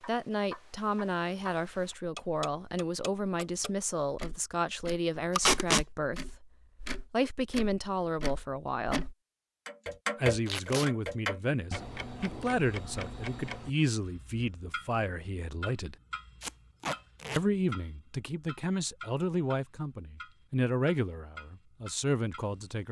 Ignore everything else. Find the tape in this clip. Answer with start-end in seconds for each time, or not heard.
5.3-5.8, 10.4-10.9, 16.4-17.4.